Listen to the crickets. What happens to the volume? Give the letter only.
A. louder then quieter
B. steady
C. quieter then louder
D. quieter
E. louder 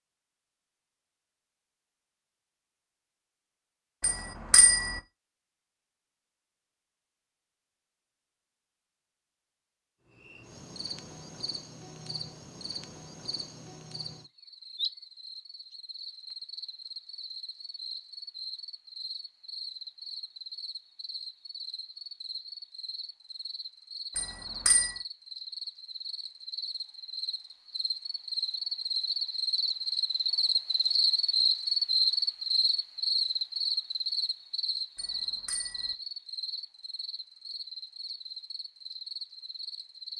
A.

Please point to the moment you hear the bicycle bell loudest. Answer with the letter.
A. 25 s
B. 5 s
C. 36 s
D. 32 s
B.